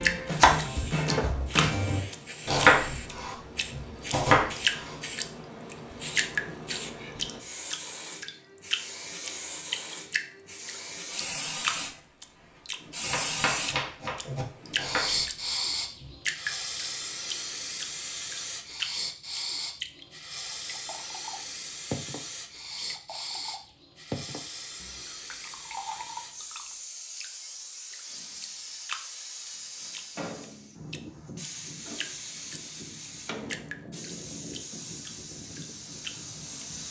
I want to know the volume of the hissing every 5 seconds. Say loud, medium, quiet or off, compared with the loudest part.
medium, medium, loud, loud, medium, medium, medium, medium.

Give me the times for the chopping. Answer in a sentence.
The chopping can be heard from 0.0 to 5.0 s and from 13.1 to 16.1 s.